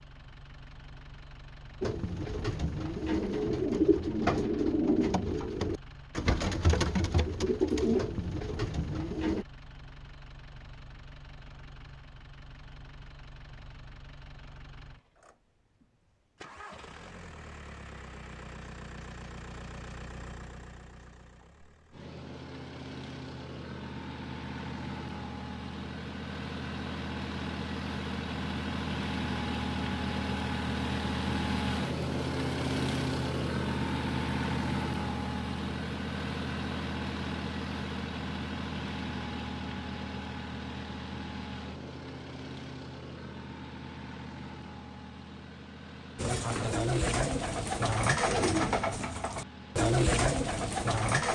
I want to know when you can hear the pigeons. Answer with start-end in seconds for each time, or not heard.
1.8-9.4, 46.1-51.3.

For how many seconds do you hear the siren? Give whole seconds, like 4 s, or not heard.
not heard.